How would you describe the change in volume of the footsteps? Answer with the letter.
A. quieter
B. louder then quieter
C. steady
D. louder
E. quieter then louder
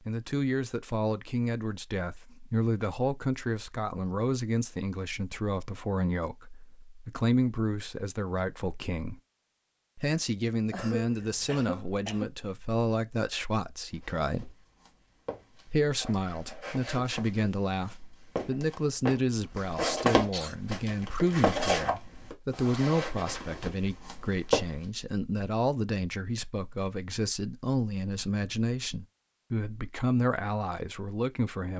B.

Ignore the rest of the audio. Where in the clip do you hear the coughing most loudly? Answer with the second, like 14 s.
11 s.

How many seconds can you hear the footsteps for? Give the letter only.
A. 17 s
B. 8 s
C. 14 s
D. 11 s
D.